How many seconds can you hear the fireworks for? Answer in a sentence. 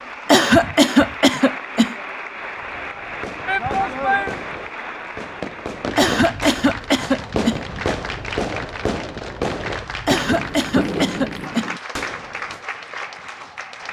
The fireworks can be heard for 10 seconds in total.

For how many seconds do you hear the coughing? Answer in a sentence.
You can hear the coughing for 5 seconds altogether.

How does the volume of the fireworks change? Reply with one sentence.
The loudness of the fireworks goes up.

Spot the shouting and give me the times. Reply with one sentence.
You can hear the shouting from 3.5 to 4.3 s.